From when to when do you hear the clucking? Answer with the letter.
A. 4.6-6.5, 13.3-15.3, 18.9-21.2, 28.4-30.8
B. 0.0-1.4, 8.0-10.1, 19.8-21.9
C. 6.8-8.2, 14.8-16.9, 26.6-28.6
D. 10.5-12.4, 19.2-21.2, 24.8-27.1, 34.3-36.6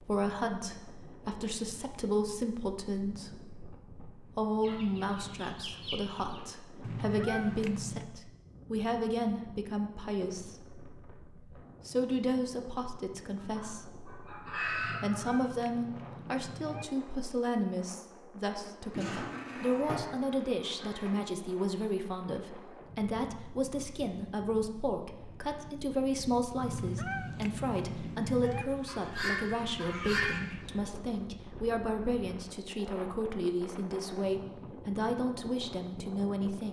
A.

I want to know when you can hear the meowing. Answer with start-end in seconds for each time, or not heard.
6.8-8.2, 14.8-16.9, 26.6-28.6.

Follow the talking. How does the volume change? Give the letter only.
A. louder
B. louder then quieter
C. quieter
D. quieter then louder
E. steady
E.